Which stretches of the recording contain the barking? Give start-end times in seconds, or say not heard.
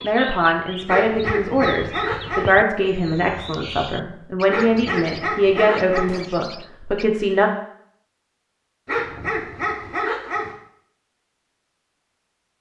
0.8-2.5, 4.5-6.2, 8.8-10.6.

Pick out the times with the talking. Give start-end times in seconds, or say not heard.
0.0-7.5.